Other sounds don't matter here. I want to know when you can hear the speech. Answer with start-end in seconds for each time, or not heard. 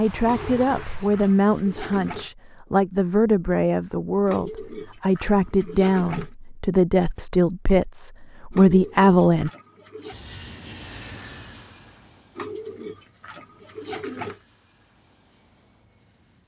0.0-9.5.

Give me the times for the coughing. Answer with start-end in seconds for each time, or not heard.
not heard.